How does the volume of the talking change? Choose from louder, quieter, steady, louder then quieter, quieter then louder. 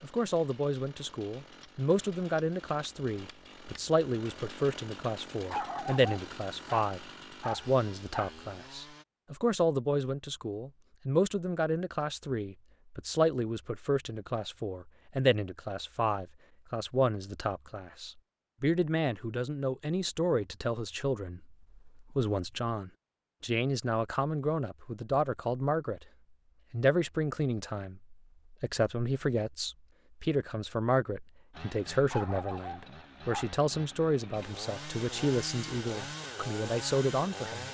steady.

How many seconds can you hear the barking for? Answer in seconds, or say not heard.
4 s.